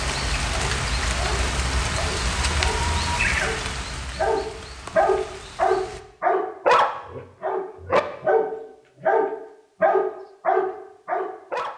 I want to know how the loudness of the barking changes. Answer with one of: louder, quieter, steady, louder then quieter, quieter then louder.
louder.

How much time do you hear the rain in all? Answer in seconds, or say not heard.
6 s.